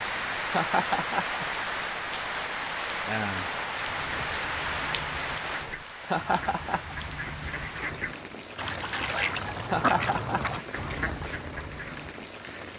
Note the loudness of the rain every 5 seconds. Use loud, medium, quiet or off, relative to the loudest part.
loud, medium, medium.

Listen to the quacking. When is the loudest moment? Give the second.
10 s.